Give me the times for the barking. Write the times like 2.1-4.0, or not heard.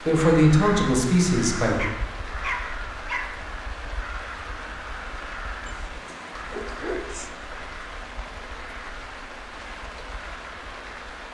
1.8-3.4, 5.7-7.3.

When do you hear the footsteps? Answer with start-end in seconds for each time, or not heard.
not heard.